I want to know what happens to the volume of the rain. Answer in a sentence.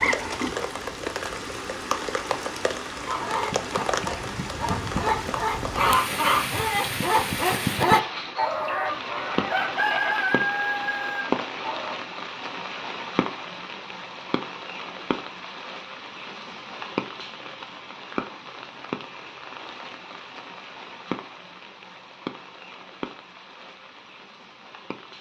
The volume of the rain goes down.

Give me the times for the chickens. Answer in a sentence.
The chickens can be heard from 3.0 to 12.0 s.